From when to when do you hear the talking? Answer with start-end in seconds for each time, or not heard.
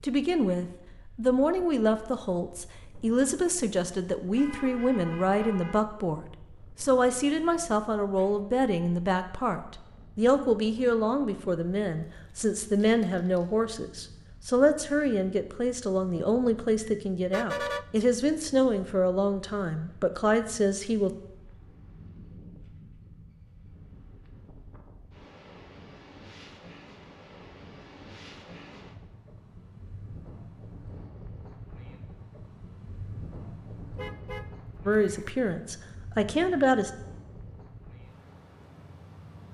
0.0-21.1, 34.9-36.9.